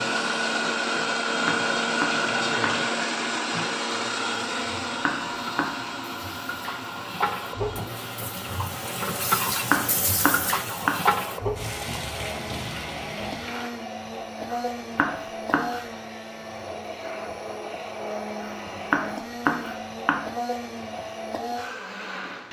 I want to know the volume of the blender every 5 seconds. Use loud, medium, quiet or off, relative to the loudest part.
loud, medium, medium, medium, medium.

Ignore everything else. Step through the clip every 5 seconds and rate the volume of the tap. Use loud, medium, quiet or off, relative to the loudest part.
medium, loud, loud, off, off.